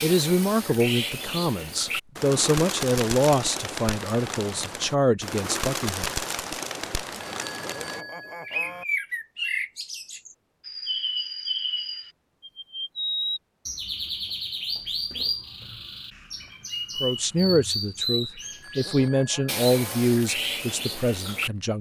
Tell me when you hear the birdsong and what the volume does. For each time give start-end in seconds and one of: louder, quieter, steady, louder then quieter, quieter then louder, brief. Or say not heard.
0.0-21.5 steady.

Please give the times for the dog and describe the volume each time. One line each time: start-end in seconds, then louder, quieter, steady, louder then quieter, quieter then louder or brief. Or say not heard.
not heard.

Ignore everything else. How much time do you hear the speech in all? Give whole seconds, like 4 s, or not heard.
11 s.